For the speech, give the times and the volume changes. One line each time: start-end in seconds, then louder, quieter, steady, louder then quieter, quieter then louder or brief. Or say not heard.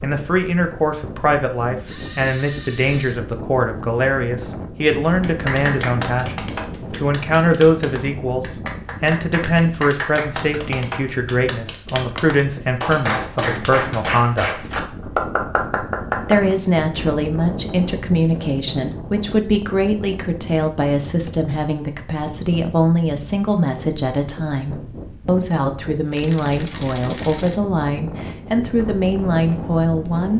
0.0-14.6 steady
16.2-30.3 steady.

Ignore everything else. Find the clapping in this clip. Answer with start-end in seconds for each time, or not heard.
5.2-16.6.